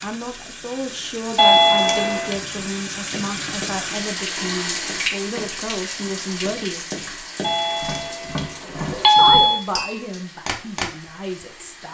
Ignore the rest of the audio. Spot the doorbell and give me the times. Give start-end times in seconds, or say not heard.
1.4-2.4, 7.4-9.6.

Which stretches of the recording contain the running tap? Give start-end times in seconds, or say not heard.
0.0-11.8.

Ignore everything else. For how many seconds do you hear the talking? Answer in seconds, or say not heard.
10 s.